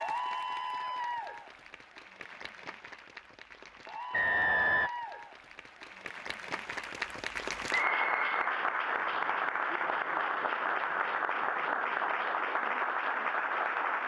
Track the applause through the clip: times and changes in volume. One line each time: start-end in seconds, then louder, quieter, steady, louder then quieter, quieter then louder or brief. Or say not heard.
0.0-14.0 louder.